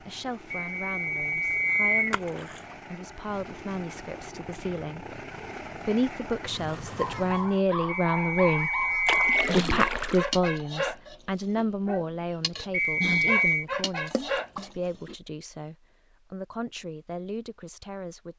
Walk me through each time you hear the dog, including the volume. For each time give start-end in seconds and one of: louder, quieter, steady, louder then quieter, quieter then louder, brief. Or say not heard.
7.0-15.2 steady.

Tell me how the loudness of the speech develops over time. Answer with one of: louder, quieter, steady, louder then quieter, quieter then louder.
louder then quieter.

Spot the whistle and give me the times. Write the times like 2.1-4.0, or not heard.
0.5-2.1, 7.8-9.6, 12.7-13.7.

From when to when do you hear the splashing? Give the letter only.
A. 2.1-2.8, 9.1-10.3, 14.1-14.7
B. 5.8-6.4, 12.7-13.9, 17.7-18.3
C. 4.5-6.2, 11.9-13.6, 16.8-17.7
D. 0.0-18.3
A.